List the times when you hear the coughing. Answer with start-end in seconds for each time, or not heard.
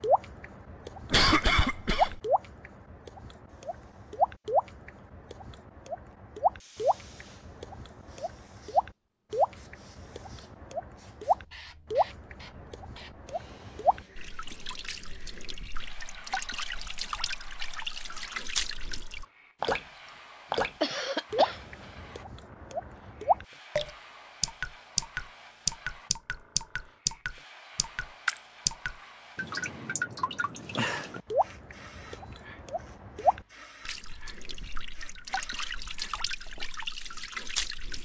1.1-2.2, 20.8-21.6.